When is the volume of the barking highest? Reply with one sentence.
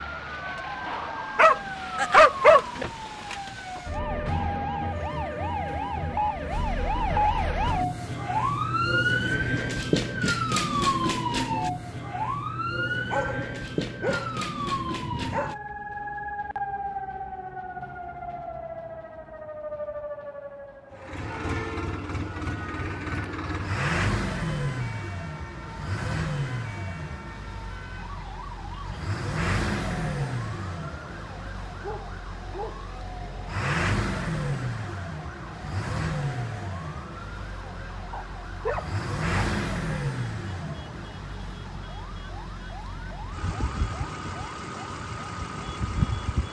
The loudest moment of the barking is at 2 seconds.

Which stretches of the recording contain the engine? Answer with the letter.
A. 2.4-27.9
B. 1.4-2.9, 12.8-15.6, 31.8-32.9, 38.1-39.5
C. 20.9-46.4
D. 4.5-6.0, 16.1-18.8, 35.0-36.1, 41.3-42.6
C.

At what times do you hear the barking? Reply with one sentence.
The barking can be heard from 1.4 to 2.9 s, from 12.8 to 15.6 s, from 31.8 to 32.9 s and from 38.1 to 39.5 s.